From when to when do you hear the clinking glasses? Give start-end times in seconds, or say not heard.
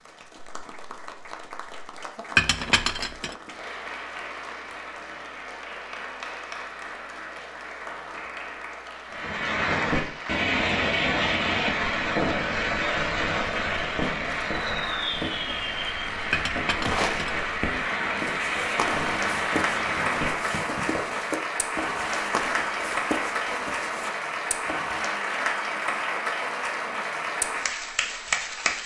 2.4-3.4, 16.3-17.5.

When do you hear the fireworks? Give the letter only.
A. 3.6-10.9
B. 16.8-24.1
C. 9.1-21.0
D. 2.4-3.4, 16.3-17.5
C.